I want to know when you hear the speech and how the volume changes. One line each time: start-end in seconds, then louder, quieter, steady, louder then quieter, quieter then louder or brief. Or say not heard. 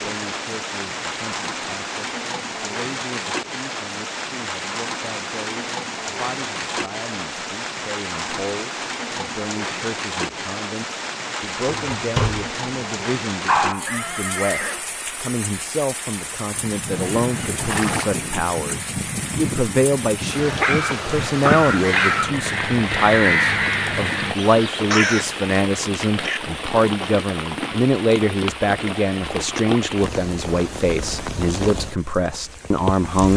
0.0-33.3 louder.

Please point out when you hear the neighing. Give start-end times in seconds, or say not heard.
13.8-14.8, 16.9-18.1.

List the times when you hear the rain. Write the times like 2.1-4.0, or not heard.
0.0-33.3.